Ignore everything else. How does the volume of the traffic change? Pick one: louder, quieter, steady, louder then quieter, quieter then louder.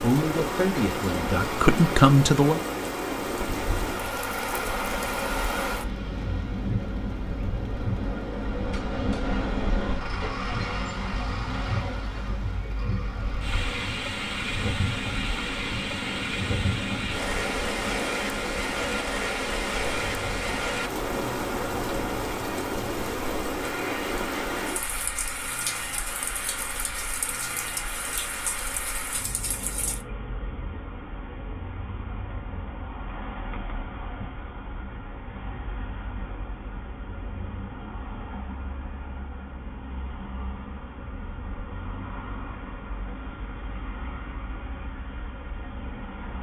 quieter.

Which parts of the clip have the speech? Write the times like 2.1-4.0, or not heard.
0.0-2.6.